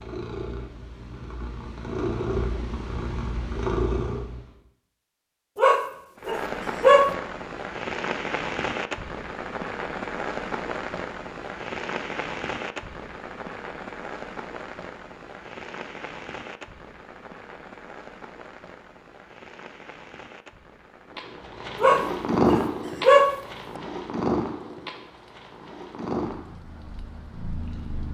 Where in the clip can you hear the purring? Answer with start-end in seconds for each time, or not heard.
0.0-4.5, 21.1-28.0.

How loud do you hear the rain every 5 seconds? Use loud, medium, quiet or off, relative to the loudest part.
off, loud, loud, medium, quiet, quiet.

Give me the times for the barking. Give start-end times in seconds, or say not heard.
5.5-7.1, 21.8-23.8.